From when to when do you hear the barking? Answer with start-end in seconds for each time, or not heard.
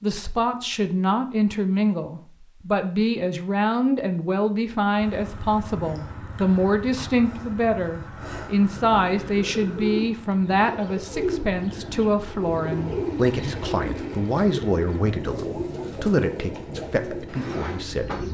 not heard.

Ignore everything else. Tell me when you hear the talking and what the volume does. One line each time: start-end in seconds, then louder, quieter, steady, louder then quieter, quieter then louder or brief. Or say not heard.
0.0-18.2 steady.